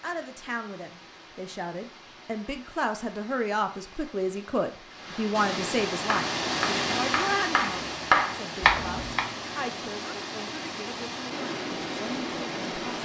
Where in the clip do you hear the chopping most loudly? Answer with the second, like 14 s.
8 s.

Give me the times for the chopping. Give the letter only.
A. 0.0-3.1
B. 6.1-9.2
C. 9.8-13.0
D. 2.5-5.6
B.